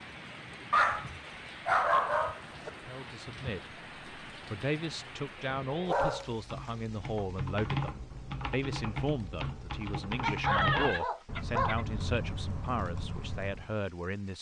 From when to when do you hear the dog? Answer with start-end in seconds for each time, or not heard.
0.7-2.7, 5.7-6.2, 10.2-11.8.